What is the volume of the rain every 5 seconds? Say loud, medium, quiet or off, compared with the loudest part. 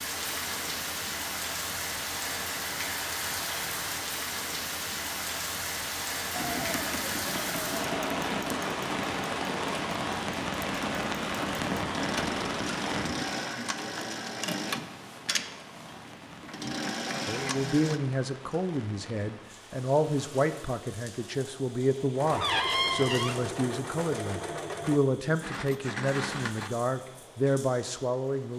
loud, loud, loud, quiet, quiet, quiet.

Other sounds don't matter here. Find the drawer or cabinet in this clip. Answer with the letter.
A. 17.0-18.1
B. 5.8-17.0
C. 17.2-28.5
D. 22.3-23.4
D.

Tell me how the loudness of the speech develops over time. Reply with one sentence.
The volume of the speech stays about the same.